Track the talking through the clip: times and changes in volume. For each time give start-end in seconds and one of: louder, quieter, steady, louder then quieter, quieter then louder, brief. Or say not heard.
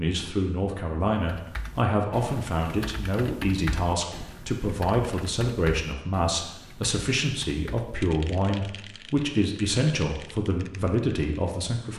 0.0-11.9 steady.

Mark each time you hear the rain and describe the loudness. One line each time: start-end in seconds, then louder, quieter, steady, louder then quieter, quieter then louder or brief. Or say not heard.
not heard.